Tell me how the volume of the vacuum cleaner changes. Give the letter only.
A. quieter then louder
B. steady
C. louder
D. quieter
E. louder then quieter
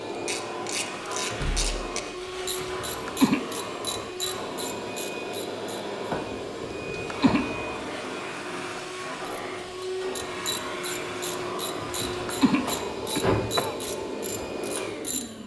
B.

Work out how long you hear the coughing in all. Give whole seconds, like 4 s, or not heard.
4 s.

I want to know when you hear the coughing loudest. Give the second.
3 s.